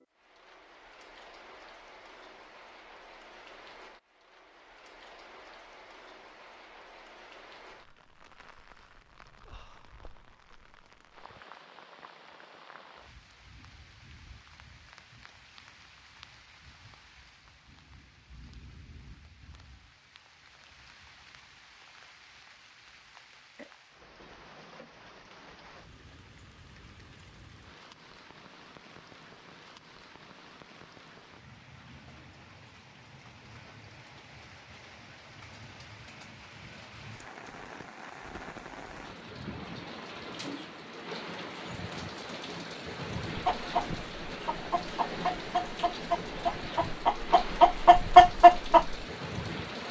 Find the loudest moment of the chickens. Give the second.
48 s.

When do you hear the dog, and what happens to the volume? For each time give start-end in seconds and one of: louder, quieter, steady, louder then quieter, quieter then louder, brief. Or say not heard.
not heard.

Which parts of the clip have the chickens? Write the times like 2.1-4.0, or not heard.
43.4-49.0.